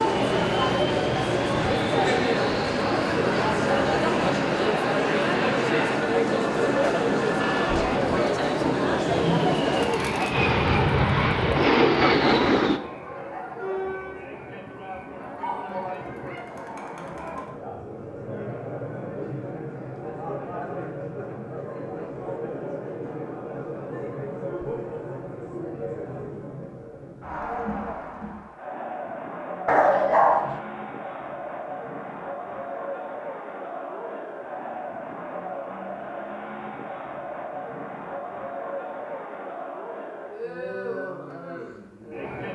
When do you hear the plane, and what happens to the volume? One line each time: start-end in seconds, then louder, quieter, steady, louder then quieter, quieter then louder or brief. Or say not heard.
0.0-12.8 louder.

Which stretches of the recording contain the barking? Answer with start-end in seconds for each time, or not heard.
29.6-30.6.